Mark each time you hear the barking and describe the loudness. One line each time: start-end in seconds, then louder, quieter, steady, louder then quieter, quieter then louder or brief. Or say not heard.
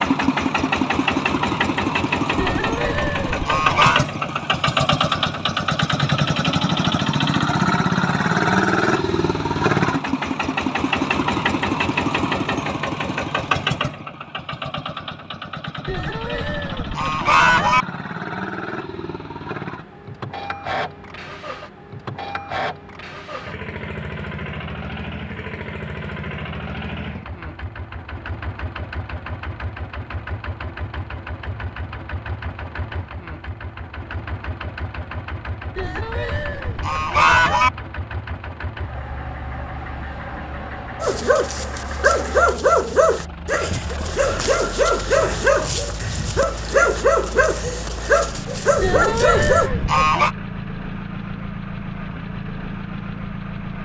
41.0-49.7 steady.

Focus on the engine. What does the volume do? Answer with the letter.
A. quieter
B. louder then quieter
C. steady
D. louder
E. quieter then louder
A.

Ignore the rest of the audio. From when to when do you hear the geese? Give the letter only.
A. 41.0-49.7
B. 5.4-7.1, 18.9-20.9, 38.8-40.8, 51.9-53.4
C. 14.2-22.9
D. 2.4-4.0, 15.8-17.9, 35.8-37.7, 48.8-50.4
D.